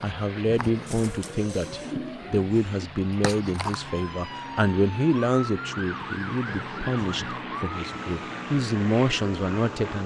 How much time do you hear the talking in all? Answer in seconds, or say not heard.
10 s.